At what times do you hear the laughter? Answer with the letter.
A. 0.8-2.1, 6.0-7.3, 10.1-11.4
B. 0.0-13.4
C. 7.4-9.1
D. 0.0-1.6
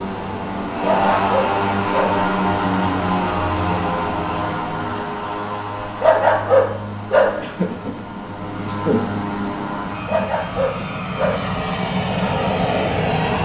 C.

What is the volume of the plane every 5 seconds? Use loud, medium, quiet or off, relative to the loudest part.
loud, medium, loud.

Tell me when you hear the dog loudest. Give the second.
6 s.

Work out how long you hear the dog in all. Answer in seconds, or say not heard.
4 s.